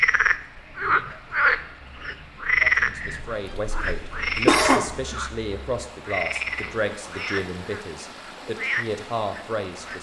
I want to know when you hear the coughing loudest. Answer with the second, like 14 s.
5 s.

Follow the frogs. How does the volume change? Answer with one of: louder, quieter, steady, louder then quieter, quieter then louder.
quieter.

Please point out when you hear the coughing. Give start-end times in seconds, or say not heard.
3.2-5.2.